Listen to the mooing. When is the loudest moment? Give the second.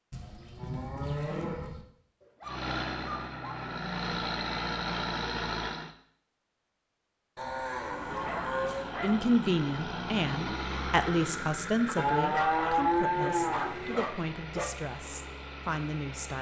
13 s.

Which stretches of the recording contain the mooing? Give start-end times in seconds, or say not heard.
0.1-1.9, 7.3-8.9, 11.9-14.0.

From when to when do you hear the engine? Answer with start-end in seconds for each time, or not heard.
2.4-6.0, 7.8-16.3.